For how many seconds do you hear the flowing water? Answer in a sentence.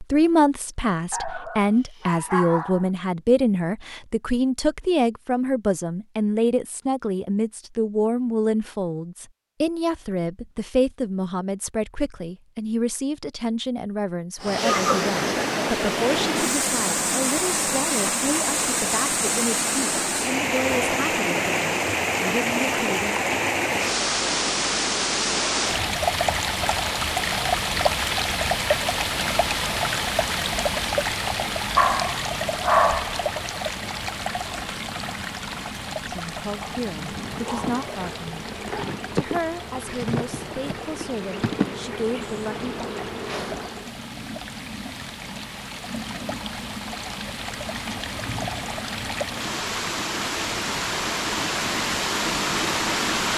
The flowing water can be heard for 39 seconds in total.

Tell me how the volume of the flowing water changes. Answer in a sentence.
The volume of the flowing water goes down, then up.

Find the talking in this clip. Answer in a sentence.
You can hear the talking from 0.0 to 23.1 s and from 36.0 to 42.9 s.